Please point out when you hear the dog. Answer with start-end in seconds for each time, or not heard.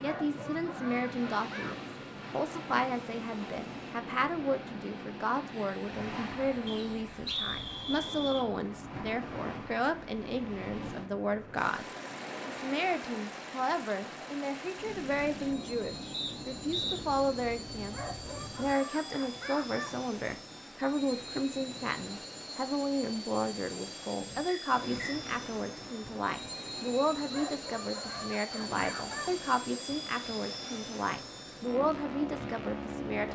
0.0-1.8, 17.9-19.9, 27.3-29.3.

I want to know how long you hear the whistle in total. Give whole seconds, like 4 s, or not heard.
3 s.